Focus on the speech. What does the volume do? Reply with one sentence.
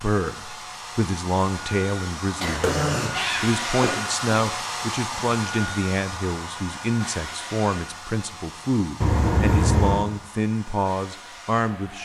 The loudness of the speech stays about the same.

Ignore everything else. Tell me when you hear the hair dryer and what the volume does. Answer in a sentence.
You can hear the hair dryer from 0.0 to 12.0 s, getting louder then quieter.